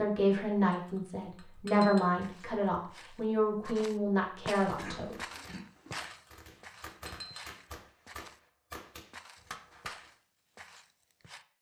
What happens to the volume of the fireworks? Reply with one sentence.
The loudness of the fireworks goes up.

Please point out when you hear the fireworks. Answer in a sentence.
You can hear the fireworks from 4.9 to 10.2 s.